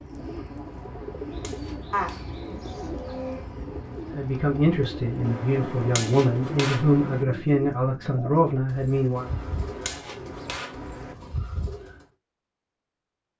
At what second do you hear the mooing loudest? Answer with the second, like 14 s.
2 s.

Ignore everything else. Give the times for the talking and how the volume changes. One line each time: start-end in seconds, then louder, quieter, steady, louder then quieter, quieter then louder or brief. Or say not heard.
4.2-9.2 steady.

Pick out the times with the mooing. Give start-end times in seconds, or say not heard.
1.9-3.5.